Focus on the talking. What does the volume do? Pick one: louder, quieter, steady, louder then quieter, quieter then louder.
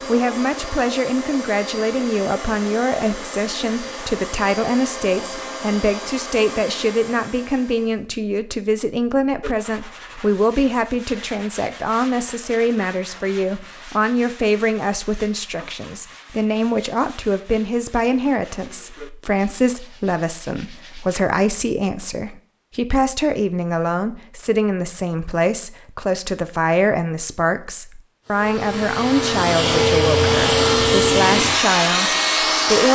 steady.